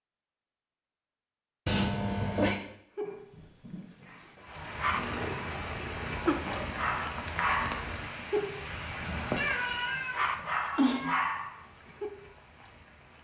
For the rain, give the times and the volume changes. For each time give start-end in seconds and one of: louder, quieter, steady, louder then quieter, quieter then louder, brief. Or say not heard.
4.3-13.2 quieter.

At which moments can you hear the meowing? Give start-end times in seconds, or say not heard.
1.6-2.6, 4.9-6.6, 9.3-11.2.